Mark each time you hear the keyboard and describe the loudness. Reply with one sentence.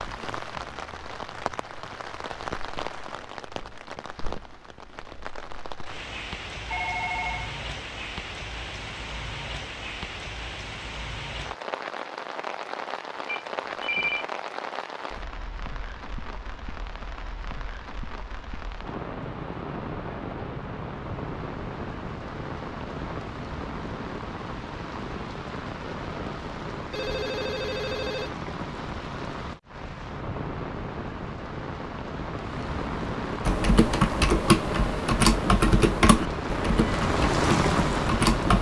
The keyboard can be heard from 33.5 to 38.5 s, getting quieter.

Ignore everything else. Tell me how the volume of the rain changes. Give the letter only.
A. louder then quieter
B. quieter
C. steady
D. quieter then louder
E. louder
E.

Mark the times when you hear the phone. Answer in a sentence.
The phone can be heard from 6.7 to 7.5 s, from 13.2 to 14.2 s and from 26.9 to 28.4 s.